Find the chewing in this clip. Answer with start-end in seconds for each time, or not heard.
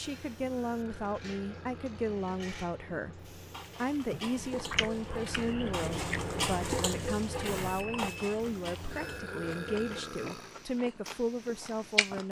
4.0-12.2.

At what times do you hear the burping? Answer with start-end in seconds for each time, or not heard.
0.7-2.2, 8.9-10.6.